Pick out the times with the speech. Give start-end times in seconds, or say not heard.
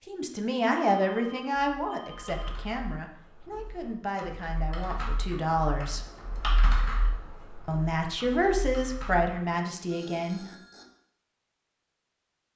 0.1-6.1, 7.7-10.4.